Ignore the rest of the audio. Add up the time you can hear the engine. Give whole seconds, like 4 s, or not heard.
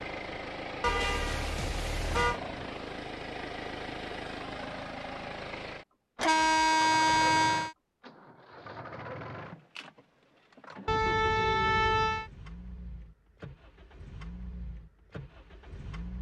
16 s.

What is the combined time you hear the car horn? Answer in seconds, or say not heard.
5 s.